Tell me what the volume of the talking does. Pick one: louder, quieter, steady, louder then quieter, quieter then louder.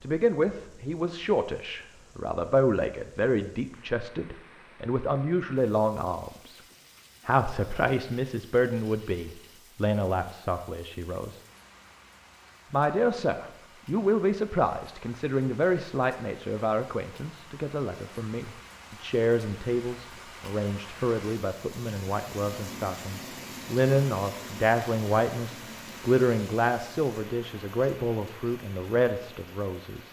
steady.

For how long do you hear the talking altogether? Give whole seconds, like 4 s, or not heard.
28 s.